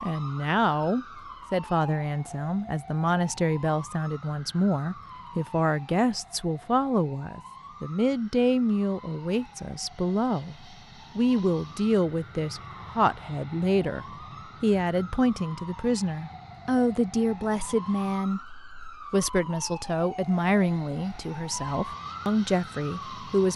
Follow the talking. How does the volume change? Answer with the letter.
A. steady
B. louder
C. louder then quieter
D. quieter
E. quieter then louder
A.